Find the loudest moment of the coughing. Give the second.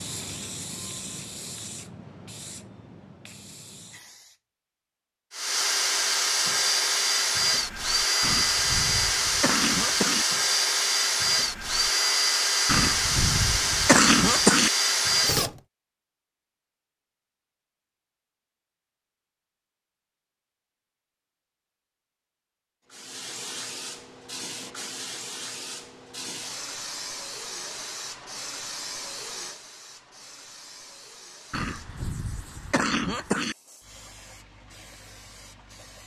14 s.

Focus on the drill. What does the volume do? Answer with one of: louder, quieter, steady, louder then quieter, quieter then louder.
steady.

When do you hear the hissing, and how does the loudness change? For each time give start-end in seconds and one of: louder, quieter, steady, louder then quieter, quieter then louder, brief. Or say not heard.
0.0-4.4 quieter
22.9-36.0 quieter.